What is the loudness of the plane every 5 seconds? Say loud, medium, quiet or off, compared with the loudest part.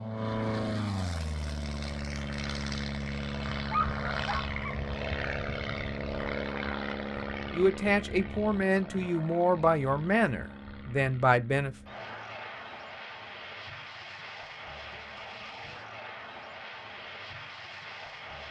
loud, loud, medium, medium.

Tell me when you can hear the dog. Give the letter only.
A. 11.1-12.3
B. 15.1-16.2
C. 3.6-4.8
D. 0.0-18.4
C.